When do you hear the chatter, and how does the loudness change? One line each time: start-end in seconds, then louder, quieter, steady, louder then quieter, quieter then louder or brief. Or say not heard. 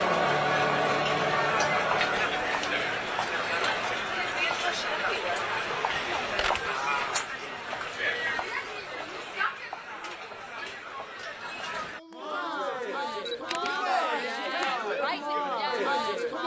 0.0-16.4 quieter then louder.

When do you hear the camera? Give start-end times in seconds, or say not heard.
6.0-6.7, 13.2-13.8.